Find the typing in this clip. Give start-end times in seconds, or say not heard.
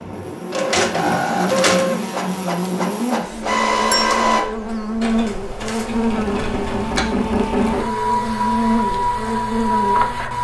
5.0-7.0.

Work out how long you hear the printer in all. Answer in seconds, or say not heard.
10 s.